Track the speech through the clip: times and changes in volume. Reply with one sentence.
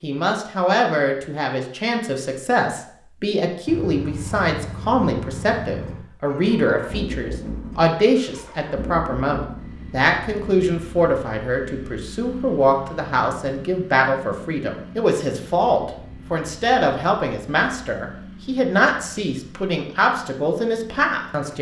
The speech can be heard from 0.0 to 21.5 s, at a steady volume.